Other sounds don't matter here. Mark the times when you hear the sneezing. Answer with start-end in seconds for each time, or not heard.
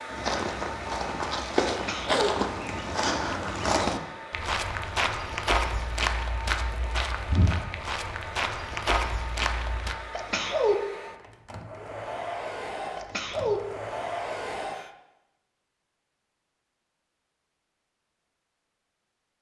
1.7-2.3, 10.2-10.8, 12.9-13.6.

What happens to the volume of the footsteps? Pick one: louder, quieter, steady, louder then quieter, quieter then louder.
steady.